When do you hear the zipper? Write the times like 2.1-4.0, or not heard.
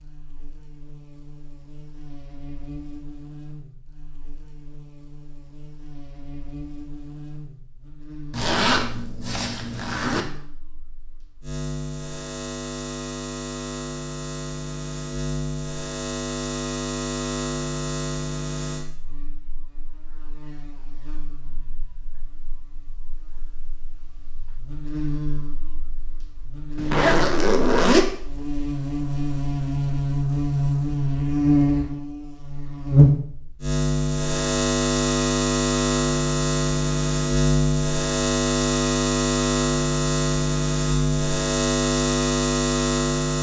8.3-10.2, 26.8-28.1.